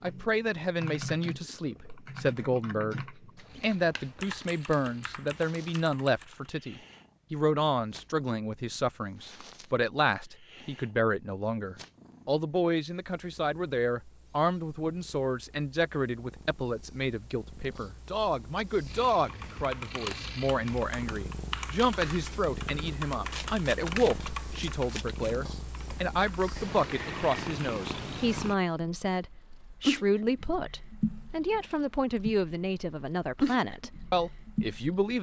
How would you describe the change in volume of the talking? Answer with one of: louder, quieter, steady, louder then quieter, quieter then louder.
steady.